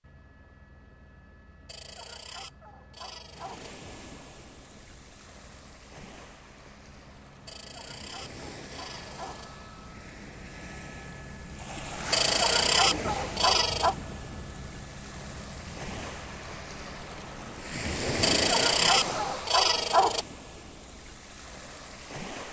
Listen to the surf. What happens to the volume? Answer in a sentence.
The loudness of the surf goes up.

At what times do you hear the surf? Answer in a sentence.
You can hear the surf from 3.4 to 22.4 s.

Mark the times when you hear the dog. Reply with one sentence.
You can hear the dog from 1.6 to 3.7 s, from 7.5 to 9.5 s, from 12.1 to 13.9 s and from 18.2 to 20.2 s.